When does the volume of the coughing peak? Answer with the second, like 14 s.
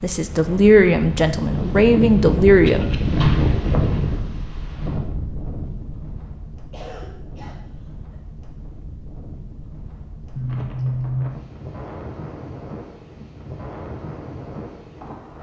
11 s.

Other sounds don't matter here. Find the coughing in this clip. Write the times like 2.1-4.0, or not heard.
2.6-3.1, 6.7-8.2, 10.3-11.4.